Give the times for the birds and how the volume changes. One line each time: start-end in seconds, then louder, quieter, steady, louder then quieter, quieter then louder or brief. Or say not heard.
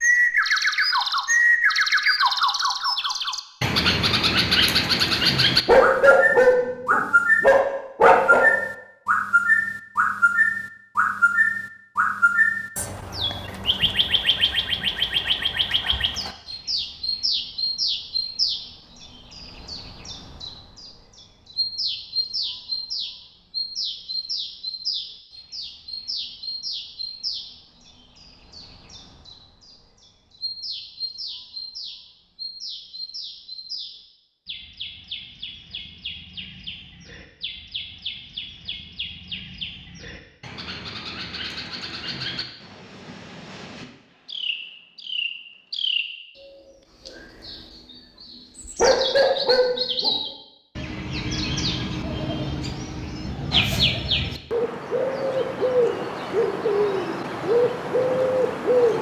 0.0-58.9 quieter then louder.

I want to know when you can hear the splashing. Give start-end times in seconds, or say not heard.
not heard.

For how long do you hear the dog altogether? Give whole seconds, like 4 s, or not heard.
4 s.